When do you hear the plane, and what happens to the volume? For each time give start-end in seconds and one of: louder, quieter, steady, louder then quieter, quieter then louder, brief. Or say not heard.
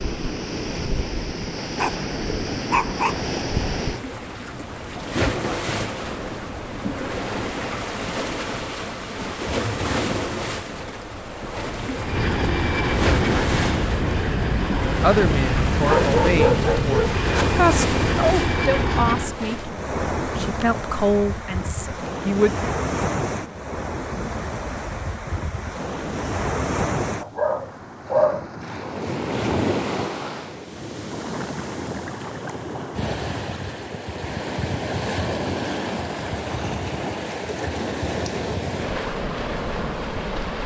11.9-19.4 steady.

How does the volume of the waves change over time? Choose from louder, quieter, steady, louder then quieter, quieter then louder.
steady.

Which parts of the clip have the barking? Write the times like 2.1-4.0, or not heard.
1.8-3.2, 15.8-17.4, 27.2-28.4.